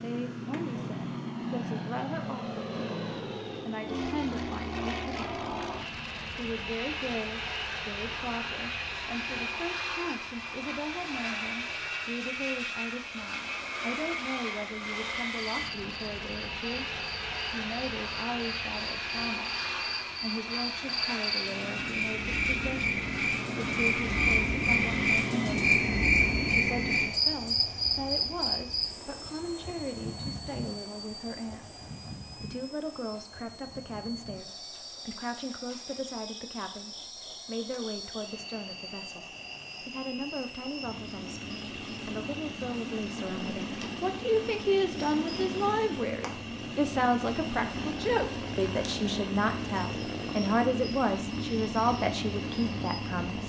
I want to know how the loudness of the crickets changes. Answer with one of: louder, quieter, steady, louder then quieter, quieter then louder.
louder then quieter.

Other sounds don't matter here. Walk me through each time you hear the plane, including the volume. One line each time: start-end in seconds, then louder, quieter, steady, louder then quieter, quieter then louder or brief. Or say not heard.
0.0-53.4 quieter then louder.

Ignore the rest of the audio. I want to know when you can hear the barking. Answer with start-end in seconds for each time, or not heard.
not heard.